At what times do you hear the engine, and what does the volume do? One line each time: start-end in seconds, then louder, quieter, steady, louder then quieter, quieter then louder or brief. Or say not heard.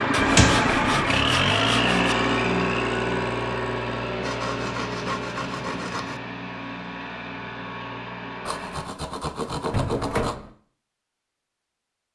0.0-8.9 quieter.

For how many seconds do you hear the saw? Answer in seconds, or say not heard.
6 s.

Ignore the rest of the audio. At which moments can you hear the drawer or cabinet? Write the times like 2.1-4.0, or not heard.
0.1-1.1, 9.7-10.5.